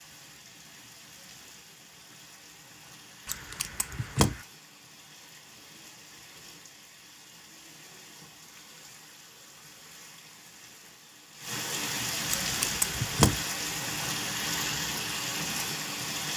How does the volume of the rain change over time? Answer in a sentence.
The loudness of the rain goes up.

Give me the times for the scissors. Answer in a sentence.
You can hear the scissors from 3.2 to 4.4 s and from 12.3 to 13.4 s.